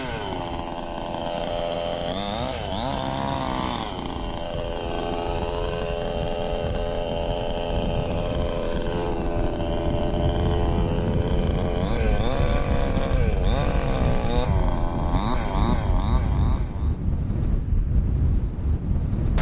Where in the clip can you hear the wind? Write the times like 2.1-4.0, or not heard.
0.0-19.3.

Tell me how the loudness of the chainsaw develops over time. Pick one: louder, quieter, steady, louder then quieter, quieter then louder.
steady.